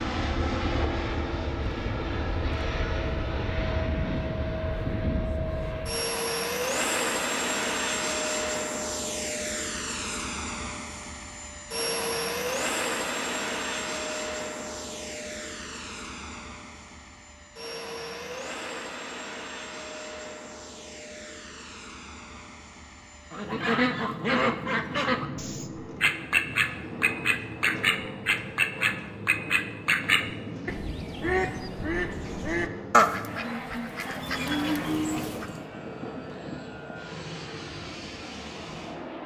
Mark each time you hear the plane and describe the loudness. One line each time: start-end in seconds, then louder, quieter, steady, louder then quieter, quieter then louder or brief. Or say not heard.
0.0-39.2 quieter.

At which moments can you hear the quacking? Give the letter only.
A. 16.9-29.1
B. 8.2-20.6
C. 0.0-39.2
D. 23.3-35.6
D.